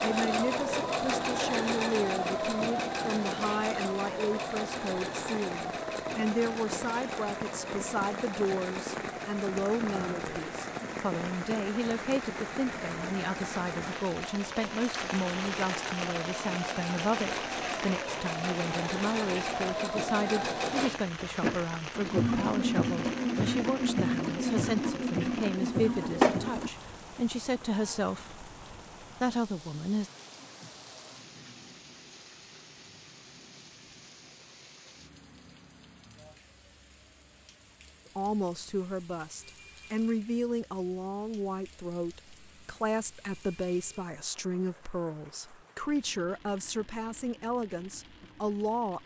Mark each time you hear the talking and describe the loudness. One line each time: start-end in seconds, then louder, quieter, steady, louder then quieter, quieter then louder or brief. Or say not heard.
0.0-30.1 steady
38.1-49.0 steady.